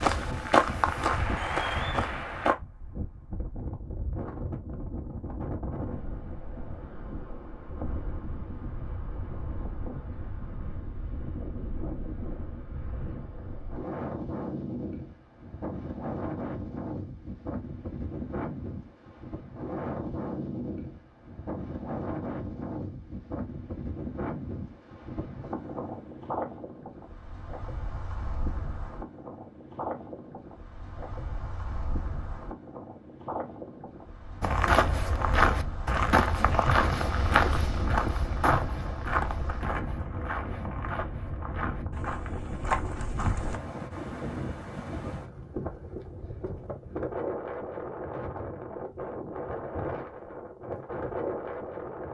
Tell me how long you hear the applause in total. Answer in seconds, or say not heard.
2 s.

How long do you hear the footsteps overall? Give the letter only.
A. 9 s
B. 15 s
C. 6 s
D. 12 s
D.